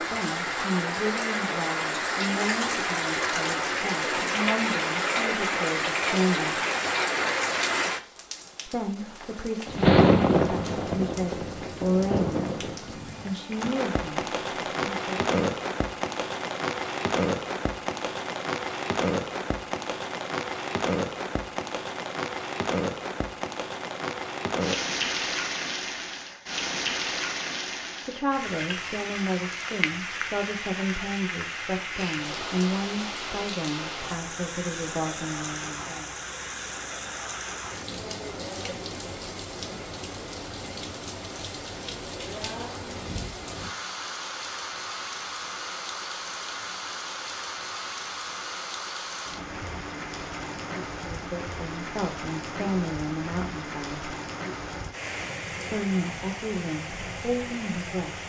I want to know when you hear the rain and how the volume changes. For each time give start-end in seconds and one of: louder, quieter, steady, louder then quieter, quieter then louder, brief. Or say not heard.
0.0-58.2 quieter.